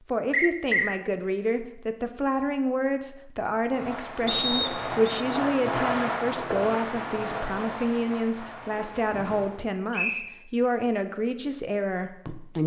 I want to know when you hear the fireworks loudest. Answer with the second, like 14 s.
6 s.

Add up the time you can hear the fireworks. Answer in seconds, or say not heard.
6 s.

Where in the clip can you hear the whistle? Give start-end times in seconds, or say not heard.
0.3-1.0, 4.2-5.2, 9.9-10.3.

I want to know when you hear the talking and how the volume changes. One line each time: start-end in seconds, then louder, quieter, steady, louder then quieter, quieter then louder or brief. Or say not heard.
0.1-12.6 steady.